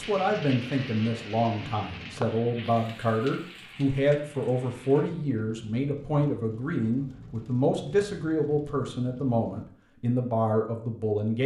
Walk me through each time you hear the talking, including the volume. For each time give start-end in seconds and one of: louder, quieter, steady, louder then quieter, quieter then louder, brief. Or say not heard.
0.0-11.4 steady.